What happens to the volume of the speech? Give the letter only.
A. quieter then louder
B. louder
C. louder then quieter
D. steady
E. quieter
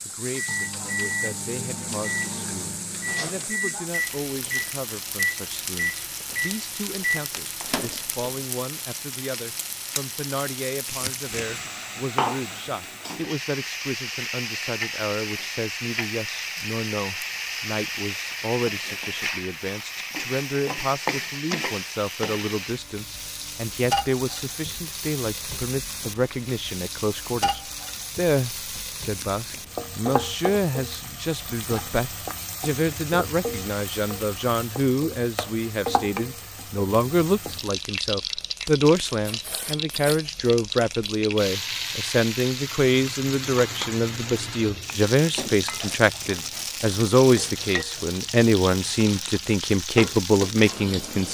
B.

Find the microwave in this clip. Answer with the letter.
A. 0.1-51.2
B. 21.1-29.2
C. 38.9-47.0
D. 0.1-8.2
D.